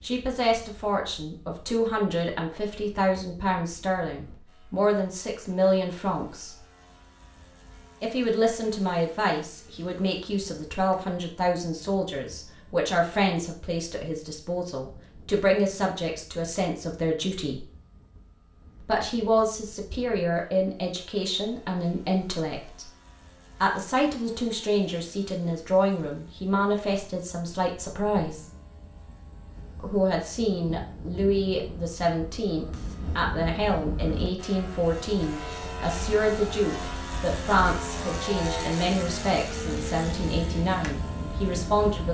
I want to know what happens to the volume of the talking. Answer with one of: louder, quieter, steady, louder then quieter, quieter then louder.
steady.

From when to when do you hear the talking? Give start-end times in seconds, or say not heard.
0.0-6.5, 8.0-17.6, 18.8-22.9, 23.6-28.4, 29.8-42.0.